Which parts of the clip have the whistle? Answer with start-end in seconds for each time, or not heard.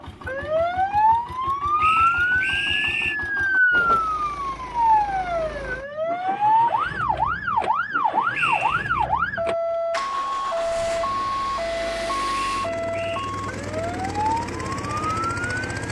1.8-3.1, 8.3-9.1, 12.3-13.3.